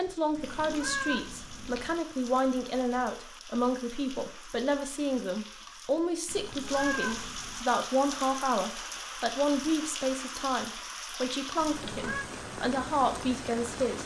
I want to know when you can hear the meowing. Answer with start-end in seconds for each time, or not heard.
0.3-2.0, 6.2-7.7, 11.6-12.2.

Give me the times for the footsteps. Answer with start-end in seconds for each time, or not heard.
not heard.